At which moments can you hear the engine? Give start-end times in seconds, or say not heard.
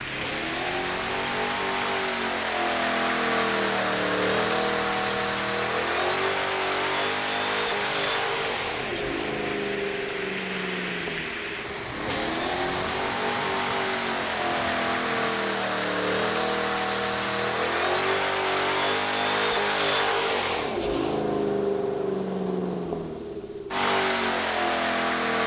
0.0-25.4.